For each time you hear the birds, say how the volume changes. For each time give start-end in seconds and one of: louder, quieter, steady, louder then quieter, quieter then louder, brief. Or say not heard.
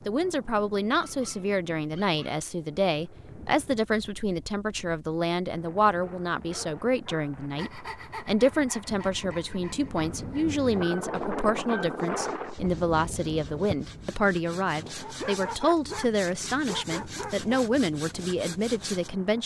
not heard.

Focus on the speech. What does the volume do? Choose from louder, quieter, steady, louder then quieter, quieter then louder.
steady.